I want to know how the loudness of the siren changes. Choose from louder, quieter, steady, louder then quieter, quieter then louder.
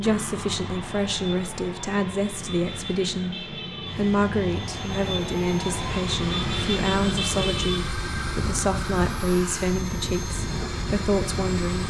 louder then quieter.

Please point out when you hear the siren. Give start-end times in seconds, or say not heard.
0.0-11.6.